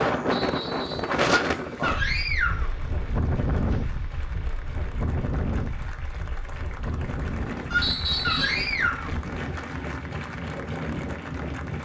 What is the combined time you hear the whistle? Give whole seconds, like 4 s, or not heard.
2 s.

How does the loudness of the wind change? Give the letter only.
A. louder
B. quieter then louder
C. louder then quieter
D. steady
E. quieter
E.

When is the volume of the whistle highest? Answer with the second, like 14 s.
8 s.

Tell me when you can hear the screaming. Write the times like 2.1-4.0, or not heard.
1.5-2.7, 7.7-9.2.